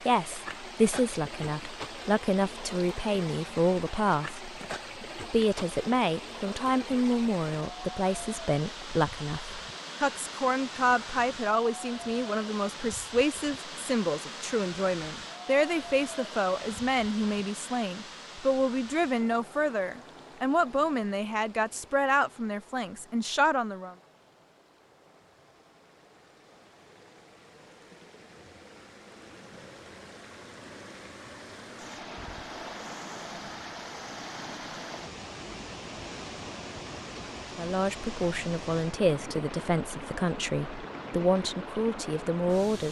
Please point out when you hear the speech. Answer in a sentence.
The speech can be heard from 0.1 to 23.9 s and from 37.5 to 42.8 s.